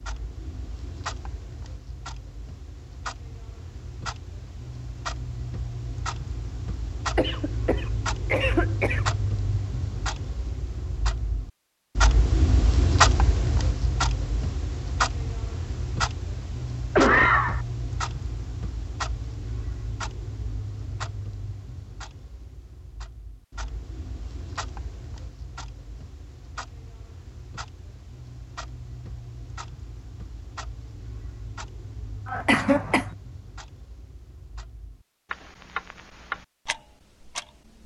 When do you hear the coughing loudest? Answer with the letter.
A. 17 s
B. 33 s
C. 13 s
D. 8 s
A.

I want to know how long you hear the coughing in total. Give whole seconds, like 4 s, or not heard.
3 s.